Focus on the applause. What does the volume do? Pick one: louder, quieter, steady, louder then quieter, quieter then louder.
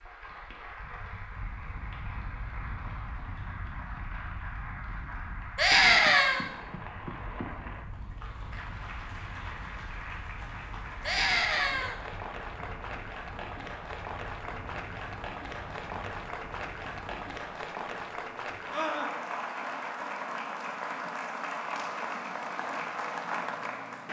louder.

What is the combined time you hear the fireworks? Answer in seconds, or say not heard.
not heard.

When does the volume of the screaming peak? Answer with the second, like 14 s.
6 s.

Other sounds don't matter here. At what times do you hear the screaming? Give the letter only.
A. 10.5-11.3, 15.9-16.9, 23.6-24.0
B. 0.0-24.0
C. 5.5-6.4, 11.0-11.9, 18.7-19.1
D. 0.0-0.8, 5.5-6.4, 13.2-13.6
C.